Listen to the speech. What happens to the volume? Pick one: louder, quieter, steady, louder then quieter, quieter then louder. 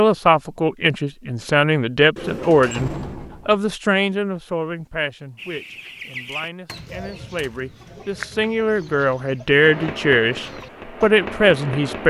quieter then louder.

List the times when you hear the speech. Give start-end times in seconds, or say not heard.
0.0-12.0.